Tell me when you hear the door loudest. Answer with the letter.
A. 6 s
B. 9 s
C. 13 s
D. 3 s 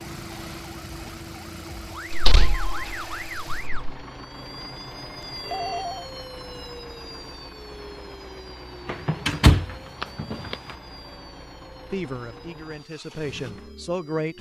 B.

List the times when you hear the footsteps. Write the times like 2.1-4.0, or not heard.
not heard.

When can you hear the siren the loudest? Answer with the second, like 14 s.
3 s.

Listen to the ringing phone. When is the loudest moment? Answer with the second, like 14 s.
6 s.